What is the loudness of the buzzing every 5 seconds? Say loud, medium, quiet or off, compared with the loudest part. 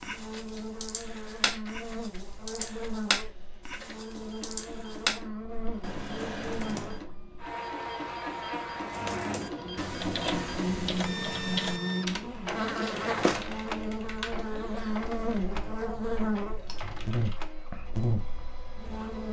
medium, medium, loud, loud.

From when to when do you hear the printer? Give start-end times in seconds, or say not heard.
0.1-19.2.